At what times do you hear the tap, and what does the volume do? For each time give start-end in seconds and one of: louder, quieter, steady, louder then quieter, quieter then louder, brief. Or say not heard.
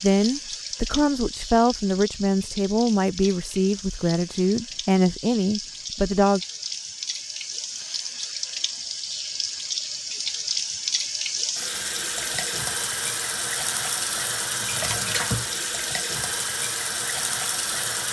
0.0-18.0 louder.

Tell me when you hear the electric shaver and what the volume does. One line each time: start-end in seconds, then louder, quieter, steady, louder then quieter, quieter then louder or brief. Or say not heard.
not heard.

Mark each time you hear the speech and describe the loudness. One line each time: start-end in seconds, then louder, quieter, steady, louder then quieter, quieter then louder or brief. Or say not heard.
0.0-6.4 steady.